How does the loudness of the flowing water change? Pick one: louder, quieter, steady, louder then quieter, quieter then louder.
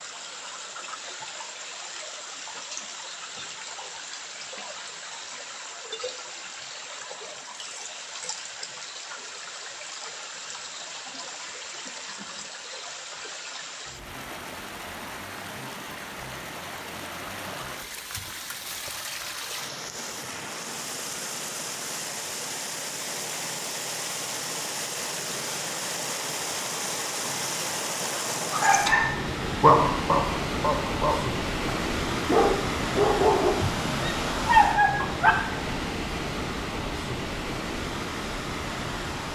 louder.